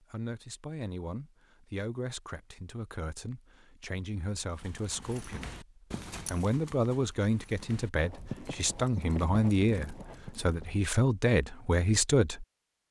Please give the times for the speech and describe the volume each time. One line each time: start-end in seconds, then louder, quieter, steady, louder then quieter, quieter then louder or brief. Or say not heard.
0.0-12.4 louder.